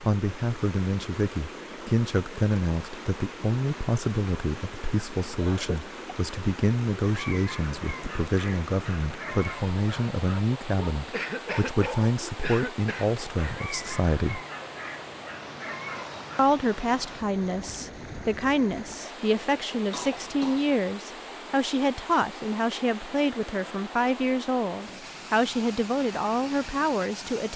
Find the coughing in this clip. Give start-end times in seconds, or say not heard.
5.3-6.0, 11.1-13.1, 19.3-20.7.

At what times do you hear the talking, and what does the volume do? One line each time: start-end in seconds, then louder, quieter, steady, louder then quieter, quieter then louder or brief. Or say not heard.
0.0-14.4 steady
16.4-27.5 steady.